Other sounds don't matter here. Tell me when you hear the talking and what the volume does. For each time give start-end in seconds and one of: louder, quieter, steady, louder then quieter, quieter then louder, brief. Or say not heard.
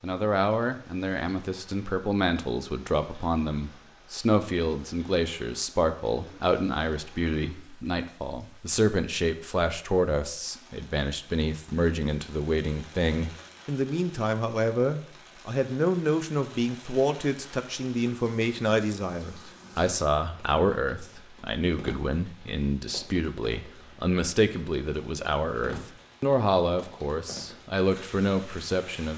0.0-29.1 steady.